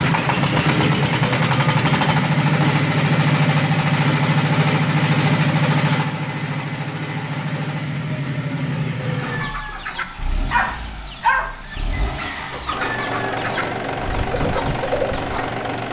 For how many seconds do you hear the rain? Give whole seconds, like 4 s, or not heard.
not heard.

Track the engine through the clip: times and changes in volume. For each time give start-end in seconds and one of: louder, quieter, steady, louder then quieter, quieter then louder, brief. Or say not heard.
0.0-15.8 quieter then louder.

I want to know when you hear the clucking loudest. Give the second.
11 s.